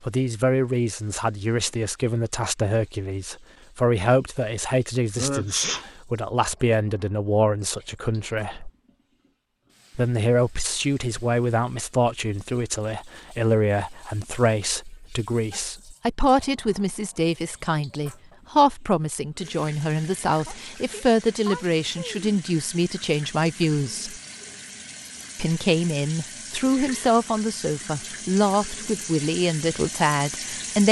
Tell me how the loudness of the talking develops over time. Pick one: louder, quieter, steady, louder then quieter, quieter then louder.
steady.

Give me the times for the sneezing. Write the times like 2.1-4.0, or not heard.
5.2-5.8, 20.4-22.3.